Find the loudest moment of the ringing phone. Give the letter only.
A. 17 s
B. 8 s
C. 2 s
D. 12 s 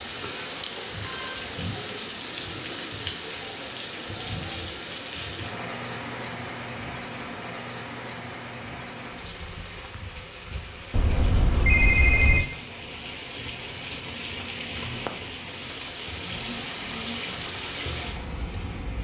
D.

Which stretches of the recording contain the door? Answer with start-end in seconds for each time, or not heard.
not heard.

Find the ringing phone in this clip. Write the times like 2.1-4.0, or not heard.
0.6-1.4, 10.9-12.4.